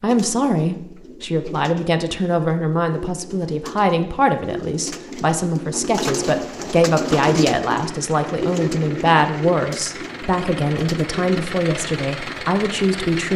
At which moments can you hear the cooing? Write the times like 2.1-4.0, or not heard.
0.1-11.3.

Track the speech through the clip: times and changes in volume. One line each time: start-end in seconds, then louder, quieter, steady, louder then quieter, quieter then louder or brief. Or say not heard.
0.0-13.3 steady.